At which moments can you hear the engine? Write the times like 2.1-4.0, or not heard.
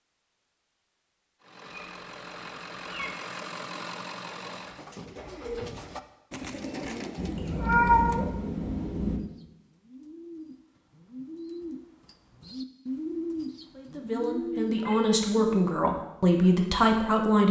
1.4-4.8.